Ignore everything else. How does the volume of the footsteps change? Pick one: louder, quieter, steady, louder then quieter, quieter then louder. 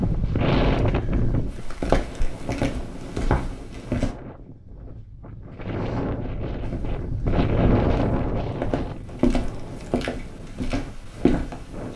quieter then louder.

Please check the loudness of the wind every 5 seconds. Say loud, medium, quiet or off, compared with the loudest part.
loud, loud, quiet.